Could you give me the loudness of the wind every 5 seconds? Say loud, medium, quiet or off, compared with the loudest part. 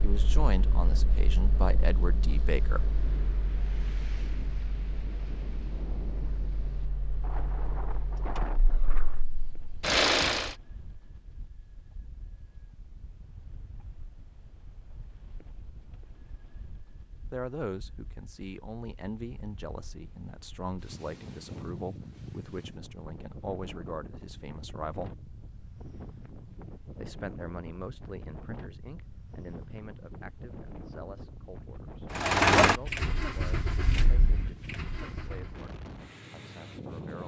loud, loud, quiet, quiet, loud, loud, loud, loud.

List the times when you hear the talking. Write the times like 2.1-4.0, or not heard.
0.0-3.0, 17.3-25.2, 26.9-37.2.